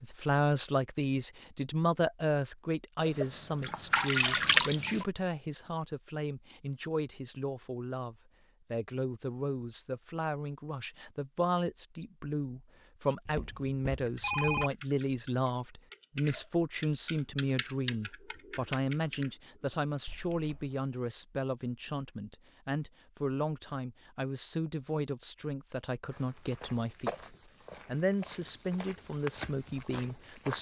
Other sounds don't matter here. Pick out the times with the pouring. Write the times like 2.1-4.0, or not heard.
3.0-5.0.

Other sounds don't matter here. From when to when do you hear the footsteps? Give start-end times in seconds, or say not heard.
26.1-30.5.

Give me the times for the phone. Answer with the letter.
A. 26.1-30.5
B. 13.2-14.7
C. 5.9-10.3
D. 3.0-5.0
B.